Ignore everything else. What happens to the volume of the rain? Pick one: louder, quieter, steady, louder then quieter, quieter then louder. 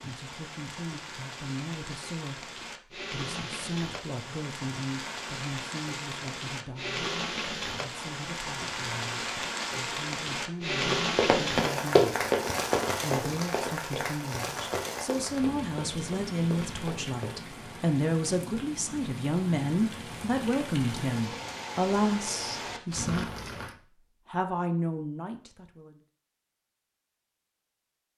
louder then quieter.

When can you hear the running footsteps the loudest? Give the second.
12 s.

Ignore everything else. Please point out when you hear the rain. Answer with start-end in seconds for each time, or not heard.
0.0-23.8.